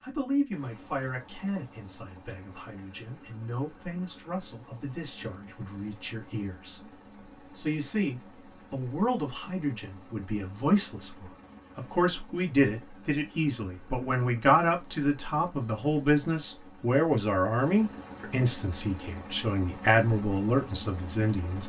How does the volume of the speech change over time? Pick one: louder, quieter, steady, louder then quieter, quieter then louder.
louder.